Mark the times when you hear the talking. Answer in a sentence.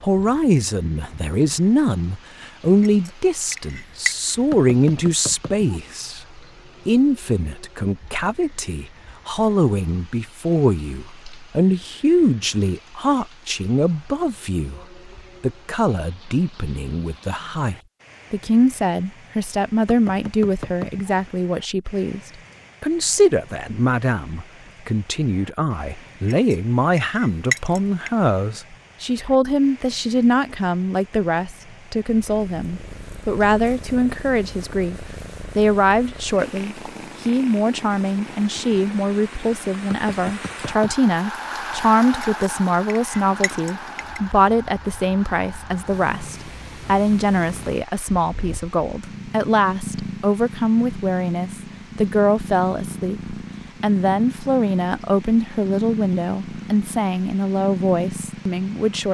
You can hear the talking from 0.0 to 22.2 s and from 22.8 to 59.0 s.